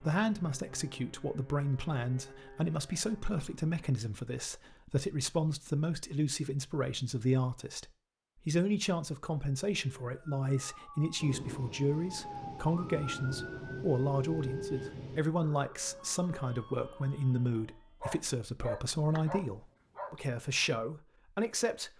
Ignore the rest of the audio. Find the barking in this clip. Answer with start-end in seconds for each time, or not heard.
18.0-20.2.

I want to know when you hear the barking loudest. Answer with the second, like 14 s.
19 s.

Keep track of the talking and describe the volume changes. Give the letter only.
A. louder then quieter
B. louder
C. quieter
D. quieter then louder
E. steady
E.